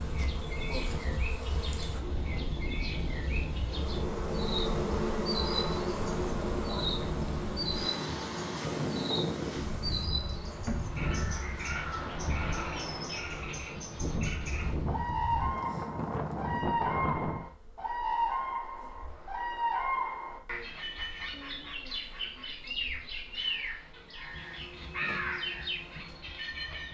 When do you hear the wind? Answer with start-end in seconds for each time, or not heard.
0.0-17.4.